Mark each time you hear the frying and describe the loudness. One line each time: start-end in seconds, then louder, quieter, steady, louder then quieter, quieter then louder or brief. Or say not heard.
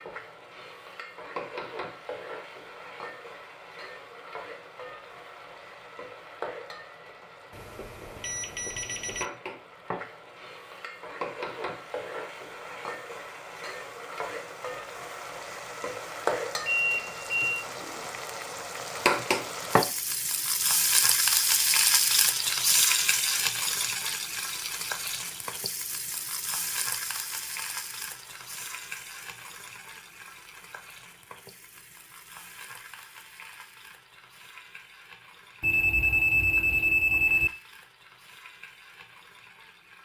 0.0-40.0 louder then quieter.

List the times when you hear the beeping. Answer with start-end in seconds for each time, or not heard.
7.5-9.2, 16.6-17.5, 35.6-37.5.